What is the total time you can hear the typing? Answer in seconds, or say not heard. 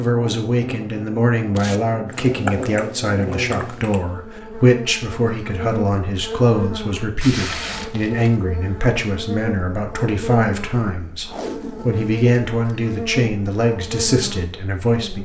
2 s.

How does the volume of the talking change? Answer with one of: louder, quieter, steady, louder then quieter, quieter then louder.
steady.